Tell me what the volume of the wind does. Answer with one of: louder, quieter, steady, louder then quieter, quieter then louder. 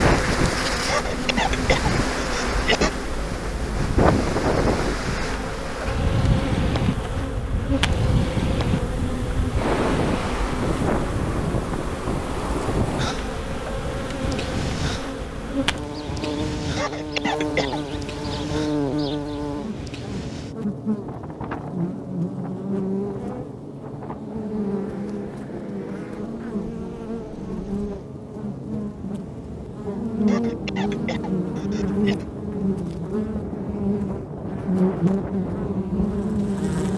quieter then louder.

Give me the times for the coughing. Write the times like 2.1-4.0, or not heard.
0.8-2.9, 16.8-17.8, 30.2-32.2.